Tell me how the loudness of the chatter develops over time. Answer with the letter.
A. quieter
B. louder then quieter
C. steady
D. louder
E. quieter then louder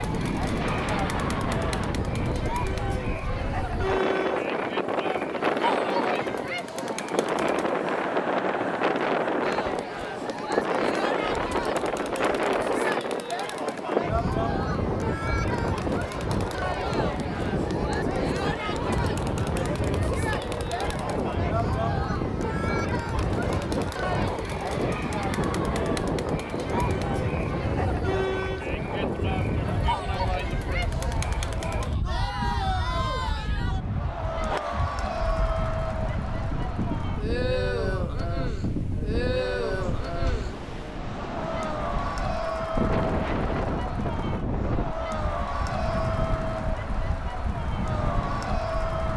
C.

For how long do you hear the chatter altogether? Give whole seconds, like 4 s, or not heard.
49 s.